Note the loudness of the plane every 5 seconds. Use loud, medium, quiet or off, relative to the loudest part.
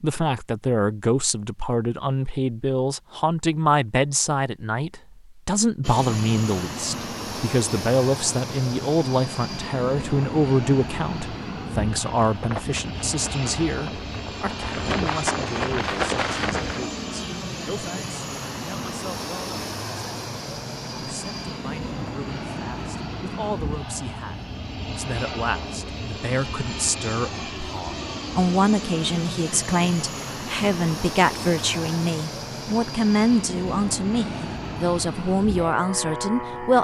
off, loud, loud, loud, loud, loud, loud, loud.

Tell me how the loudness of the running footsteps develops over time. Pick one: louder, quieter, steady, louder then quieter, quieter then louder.
louder.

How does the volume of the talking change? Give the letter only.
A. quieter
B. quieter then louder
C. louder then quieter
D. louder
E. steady
B.